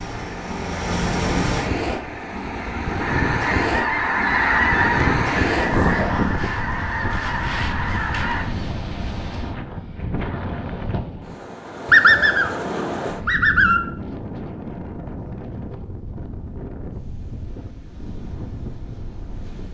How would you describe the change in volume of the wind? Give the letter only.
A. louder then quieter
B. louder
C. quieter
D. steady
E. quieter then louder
C.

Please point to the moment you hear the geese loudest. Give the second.
12 s.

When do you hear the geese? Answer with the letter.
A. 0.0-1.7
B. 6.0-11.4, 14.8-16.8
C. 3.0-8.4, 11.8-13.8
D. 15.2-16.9
C.